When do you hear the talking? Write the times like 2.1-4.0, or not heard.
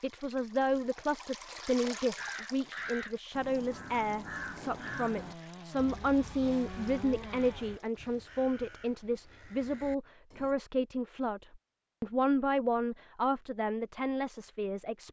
0.0-15.0.